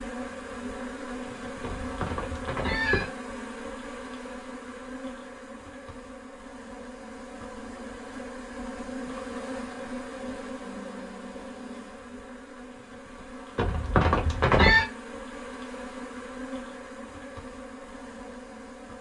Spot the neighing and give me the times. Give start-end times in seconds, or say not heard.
1.6-3.1, 13.6-14.8.